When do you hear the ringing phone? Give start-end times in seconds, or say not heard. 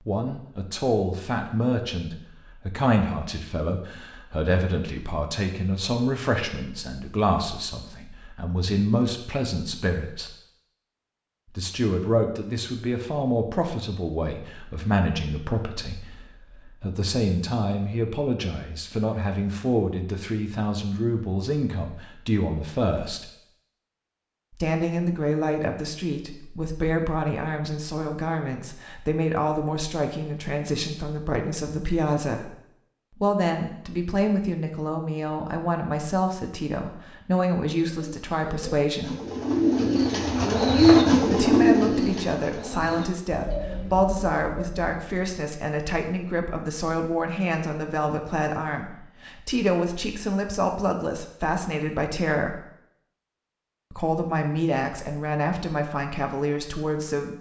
not heard.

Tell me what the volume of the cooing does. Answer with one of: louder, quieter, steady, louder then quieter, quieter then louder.
louder then quieter.